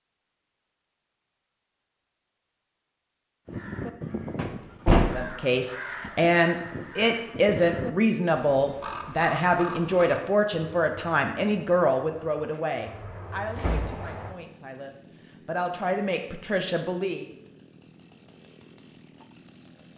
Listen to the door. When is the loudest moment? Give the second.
5 s.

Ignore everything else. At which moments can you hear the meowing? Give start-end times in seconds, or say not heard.
not heard.